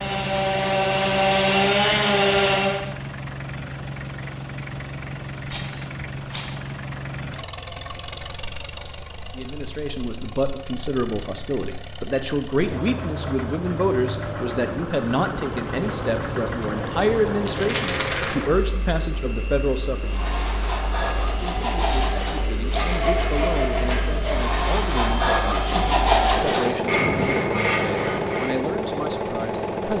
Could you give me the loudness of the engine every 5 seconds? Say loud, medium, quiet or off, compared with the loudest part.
medium, medium, medium, loud, medium, loud.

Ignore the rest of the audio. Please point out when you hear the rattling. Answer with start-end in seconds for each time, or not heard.
5.5-6.5, 17.4-18.4, 21.9-22.9.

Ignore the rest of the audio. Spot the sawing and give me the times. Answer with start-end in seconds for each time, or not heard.
0.0-2.8, 20.0-28.6.